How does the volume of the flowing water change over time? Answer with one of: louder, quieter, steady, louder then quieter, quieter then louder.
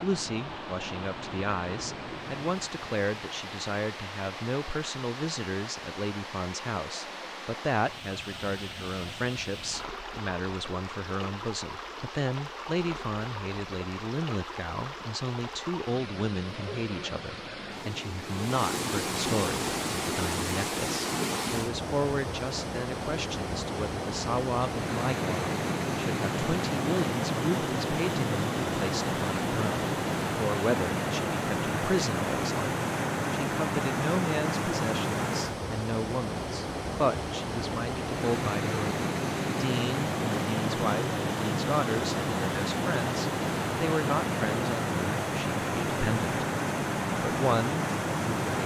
louder.